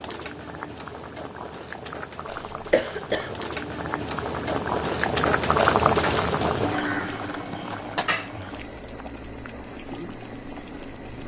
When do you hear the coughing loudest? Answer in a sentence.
The volume of the coughing peaks at 3 seconds.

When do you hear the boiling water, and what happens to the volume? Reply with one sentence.
The boiling water can be heard from 0.0 to 11.2 s, getting louder then quieter.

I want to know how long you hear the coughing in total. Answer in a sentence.
The coughing can be heard for 2 seconds in total.